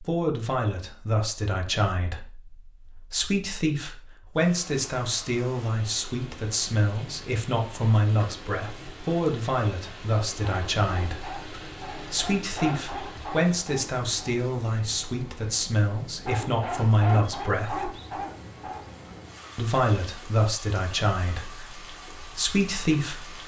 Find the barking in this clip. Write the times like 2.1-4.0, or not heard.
10.3-14.3, 16.2-18.8.